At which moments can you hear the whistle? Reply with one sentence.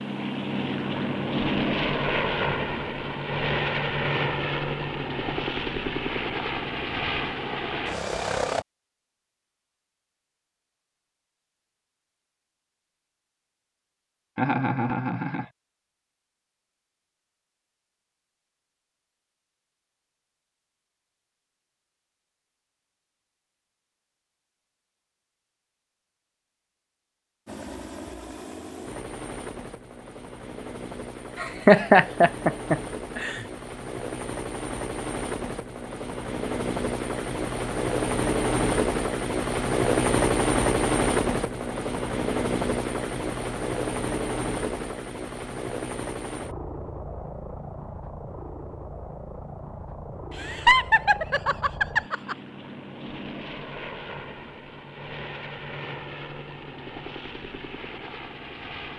You can't hear the whistle here.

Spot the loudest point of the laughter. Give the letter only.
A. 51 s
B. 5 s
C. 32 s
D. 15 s
C.